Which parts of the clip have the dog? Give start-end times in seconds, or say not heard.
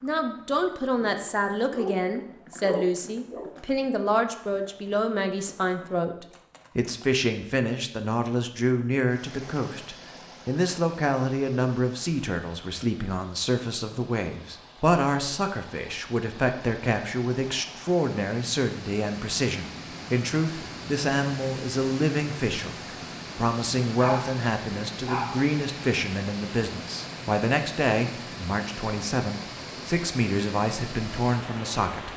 0.9-3.5, 23.9-24.4, 25.1-25.5.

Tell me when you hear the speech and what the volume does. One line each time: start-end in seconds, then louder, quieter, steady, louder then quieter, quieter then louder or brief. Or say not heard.
0.0-32.1 steady.